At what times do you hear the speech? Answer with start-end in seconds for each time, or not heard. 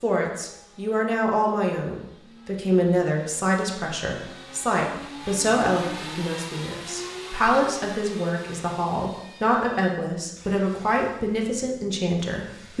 0.0-12.7.